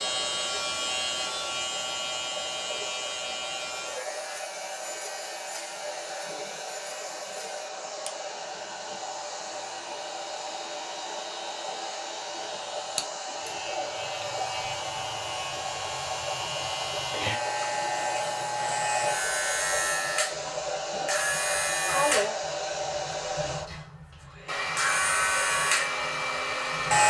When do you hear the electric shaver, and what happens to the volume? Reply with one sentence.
The electric shaver can be heard from 0.0 to 27.0 s, getting quieter then louder.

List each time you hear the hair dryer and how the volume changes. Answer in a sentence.
The hair dryer can be heard from 0.0 to 27.0 s, getting louder.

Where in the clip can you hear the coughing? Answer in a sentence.
The coughing can be heard from 21.3 to 22.4 s.